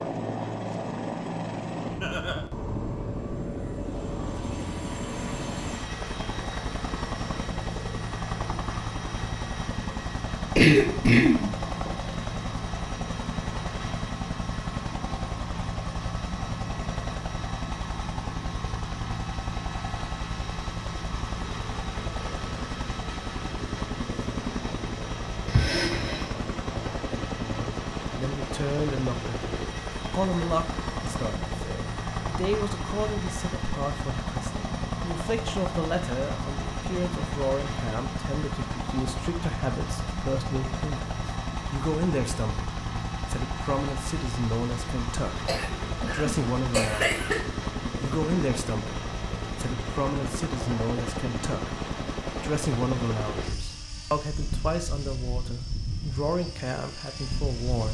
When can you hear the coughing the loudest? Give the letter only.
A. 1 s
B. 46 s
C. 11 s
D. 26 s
C.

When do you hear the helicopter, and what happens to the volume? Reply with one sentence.
The helicopter can be heard from 0.0 to 57.8 s, at a steady volume.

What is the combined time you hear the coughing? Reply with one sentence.
You can hear the coughing for 4 seconds altogether.